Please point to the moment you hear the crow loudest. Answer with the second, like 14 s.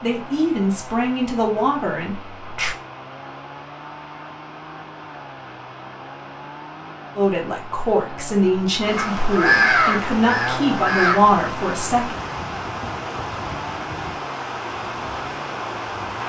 10 s.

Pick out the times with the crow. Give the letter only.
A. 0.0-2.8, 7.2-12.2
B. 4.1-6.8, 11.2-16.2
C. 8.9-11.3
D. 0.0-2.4
C.